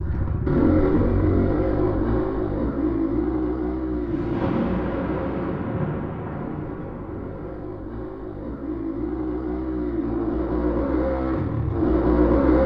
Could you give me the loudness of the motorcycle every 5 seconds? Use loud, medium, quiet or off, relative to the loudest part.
loud, medium, loud.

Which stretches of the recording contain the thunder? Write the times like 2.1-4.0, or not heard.
3.9-7.7.